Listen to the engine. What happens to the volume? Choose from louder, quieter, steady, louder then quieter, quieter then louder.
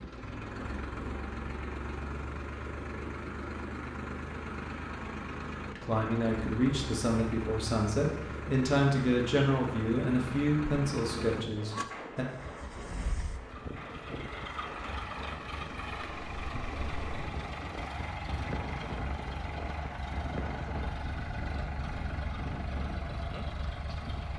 steady.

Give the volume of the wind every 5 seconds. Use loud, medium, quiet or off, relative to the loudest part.
off, off, loud, loud, loud.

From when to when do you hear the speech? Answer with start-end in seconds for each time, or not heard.
5.7-12.2.